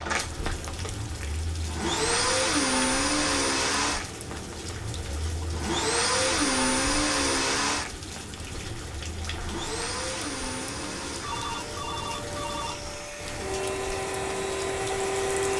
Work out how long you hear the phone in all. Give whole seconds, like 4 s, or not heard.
2 s.